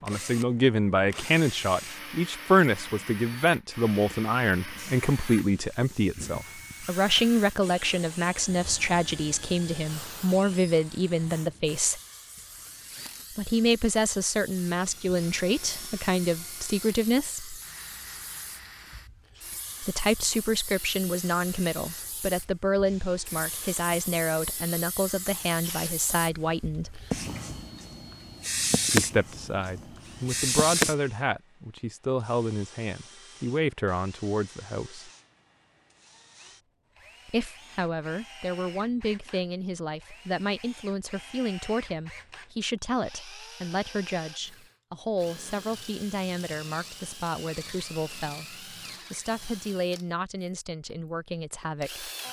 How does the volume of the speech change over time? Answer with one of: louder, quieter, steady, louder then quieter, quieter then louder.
quieter.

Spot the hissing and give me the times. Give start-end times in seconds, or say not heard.
4.6-30.9.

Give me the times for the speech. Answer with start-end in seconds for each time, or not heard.
0.0-12.0, 13.3-17.6, 19.8-27.0, 28.9-35.1, 37.2-52.1.